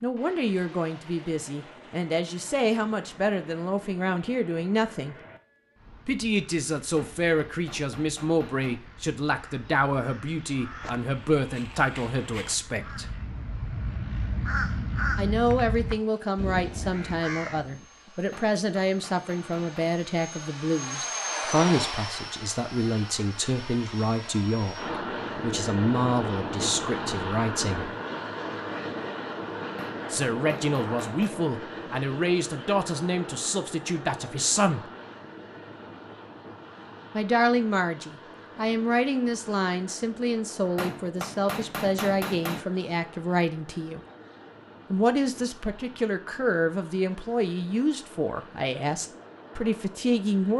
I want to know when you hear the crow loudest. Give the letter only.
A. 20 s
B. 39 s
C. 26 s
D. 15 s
D.